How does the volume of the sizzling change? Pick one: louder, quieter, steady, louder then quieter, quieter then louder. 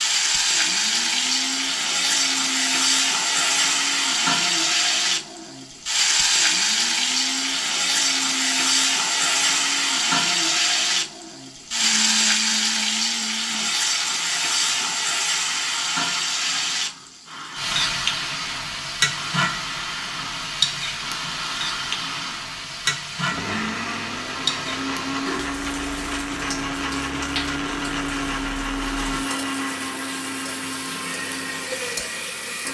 quieter.